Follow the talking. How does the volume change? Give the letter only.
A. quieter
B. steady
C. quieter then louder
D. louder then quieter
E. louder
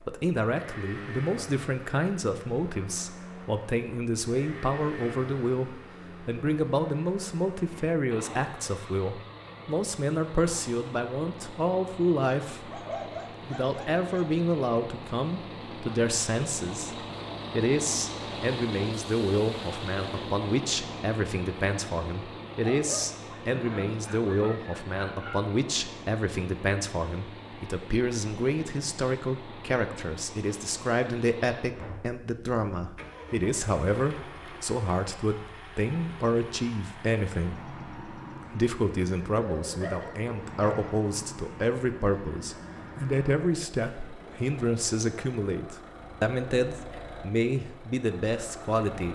B.